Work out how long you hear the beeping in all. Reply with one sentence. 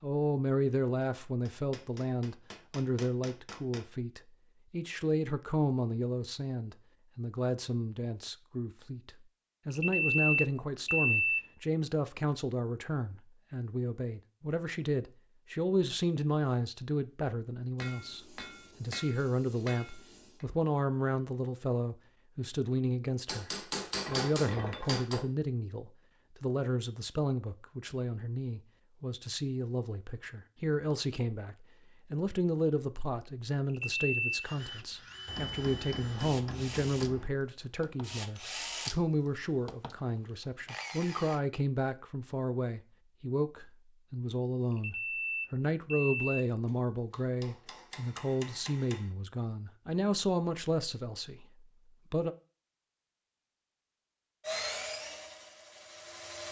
The beeping can be heard for 4 seconds in total.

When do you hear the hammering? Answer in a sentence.
You can hear the hammering from 1.4 to 3.8 s, from 17.8 to 20.4 s, from 23.2 to 25.2 s, from 35.2 to 37.3 s and from 46.6 to 49.1 s.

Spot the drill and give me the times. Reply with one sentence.
You can hear the drill from 34.4 to 41.4 s and from 54.4 to 56.4 s.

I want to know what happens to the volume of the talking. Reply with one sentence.
The volume of the talking stays about the same.